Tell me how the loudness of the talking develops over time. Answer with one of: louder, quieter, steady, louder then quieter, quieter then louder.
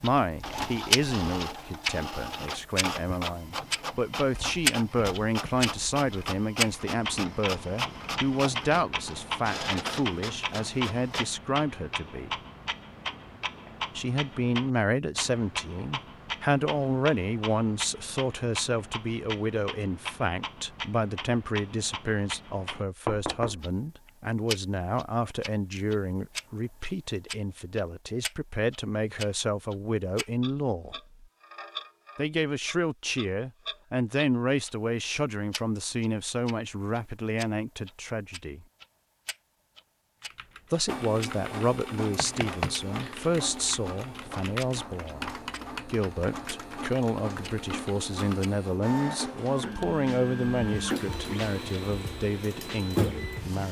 steady.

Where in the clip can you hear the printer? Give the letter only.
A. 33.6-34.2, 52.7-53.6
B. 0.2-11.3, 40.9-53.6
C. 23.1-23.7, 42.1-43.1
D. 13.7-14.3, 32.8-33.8
B.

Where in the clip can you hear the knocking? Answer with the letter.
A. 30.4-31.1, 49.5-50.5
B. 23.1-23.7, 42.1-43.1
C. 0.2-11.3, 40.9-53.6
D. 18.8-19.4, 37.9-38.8
B.